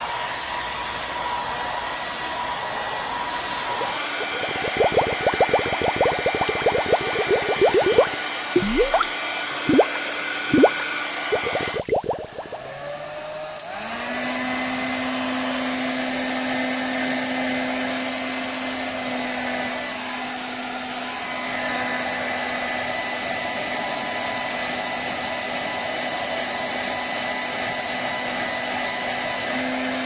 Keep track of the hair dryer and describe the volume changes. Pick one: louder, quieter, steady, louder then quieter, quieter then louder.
steady.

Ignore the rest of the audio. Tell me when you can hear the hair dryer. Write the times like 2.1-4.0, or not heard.
0.0-30.0.